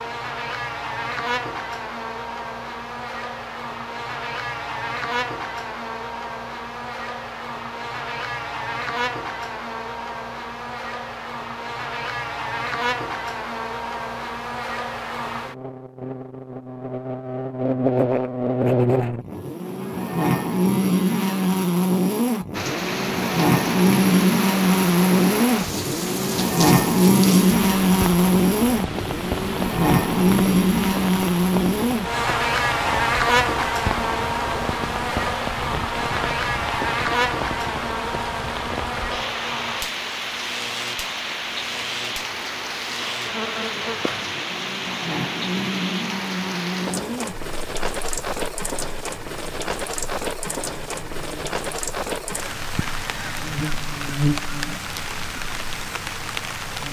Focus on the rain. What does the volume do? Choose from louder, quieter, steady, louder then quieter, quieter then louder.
steady.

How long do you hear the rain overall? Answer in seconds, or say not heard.
34 s.